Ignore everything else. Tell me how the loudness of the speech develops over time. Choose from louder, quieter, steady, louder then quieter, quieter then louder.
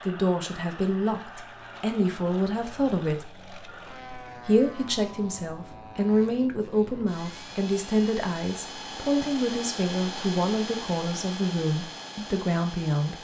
steady.